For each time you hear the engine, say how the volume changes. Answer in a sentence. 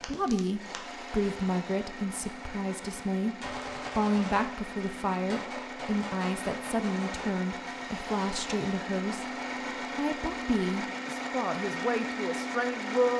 The engine can be heard from 0.0 to 13.1 s, getting louder.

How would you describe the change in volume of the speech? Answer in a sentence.
The loudness of the speech stays about the same.